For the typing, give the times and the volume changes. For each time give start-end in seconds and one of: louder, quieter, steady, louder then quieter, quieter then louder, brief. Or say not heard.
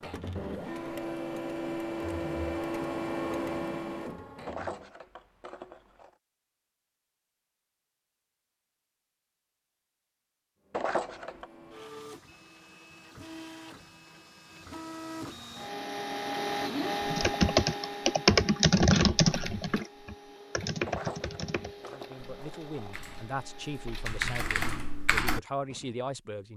17.1-25.4 quieter then louder.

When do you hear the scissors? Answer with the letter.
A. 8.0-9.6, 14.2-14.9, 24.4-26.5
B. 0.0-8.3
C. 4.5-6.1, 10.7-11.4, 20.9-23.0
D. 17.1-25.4
C.